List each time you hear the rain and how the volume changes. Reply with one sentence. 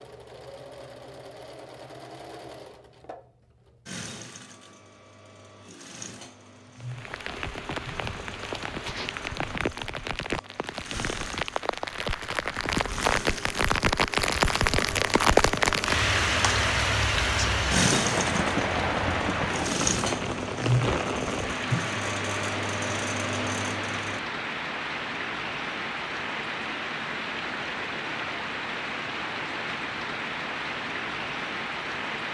You can hear the rain from 6.8 to 32.2 s, getting louder then quieter.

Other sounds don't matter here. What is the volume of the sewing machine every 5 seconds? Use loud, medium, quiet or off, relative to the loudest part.
quiet, quiet, medium, loud, loud, off, off.